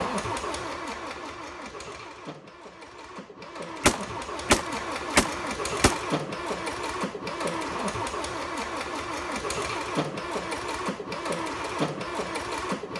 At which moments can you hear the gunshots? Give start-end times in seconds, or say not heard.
3.8-6.0.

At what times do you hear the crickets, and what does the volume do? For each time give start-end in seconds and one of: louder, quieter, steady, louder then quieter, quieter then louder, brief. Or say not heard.
not heard.